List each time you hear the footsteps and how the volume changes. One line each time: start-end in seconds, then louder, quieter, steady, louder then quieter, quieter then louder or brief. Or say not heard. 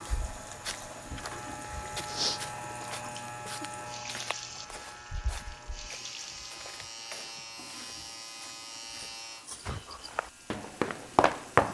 0.0-11.6 quieter then louder.